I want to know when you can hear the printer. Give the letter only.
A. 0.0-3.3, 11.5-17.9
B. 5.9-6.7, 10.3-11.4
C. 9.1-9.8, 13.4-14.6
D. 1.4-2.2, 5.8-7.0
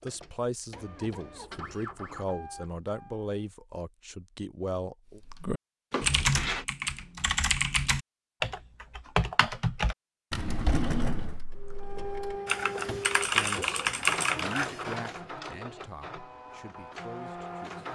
A.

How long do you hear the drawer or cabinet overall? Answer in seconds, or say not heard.
2 s.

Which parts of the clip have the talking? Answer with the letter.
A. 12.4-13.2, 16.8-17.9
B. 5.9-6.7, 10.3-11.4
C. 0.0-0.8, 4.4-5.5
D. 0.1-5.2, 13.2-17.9
D.